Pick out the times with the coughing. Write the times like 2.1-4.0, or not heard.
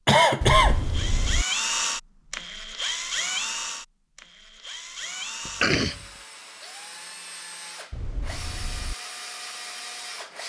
0.1-0.8, 5.5-6.0.